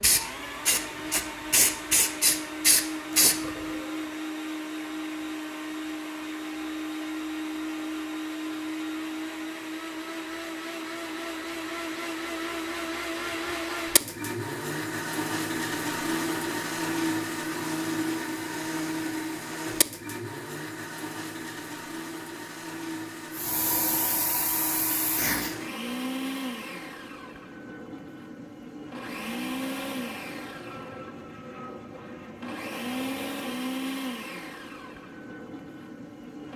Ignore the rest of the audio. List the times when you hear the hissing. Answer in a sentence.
You can hear the hissing from 0.0 to 3.6 s and from 23.3 to 25.6 s.